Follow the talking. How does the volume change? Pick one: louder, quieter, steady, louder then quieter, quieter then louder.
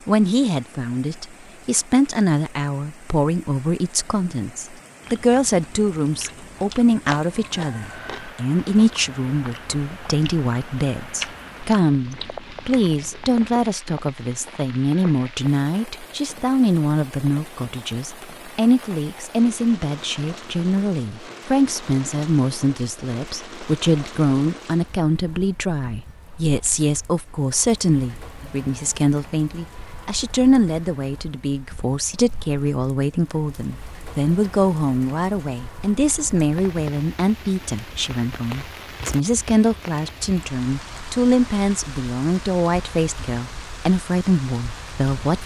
steady.